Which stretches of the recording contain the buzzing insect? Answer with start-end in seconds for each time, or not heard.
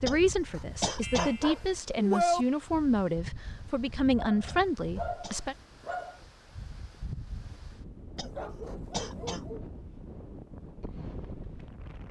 not heard.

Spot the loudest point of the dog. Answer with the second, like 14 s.
2 s.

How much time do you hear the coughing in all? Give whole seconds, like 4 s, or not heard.
4 s.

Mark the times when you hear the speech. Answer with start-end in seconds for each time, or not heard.
0.0-5.5.